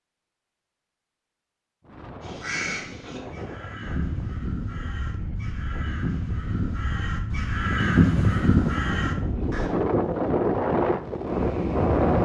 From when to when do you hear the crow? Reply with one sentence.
The crow can be heard from 2.2 to 9.7 s.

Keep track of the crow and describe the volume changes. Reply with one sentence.
The volume of the crow goes up.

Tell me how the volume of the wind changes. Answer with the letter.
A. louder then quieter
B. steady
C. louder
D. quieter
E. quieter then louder
C.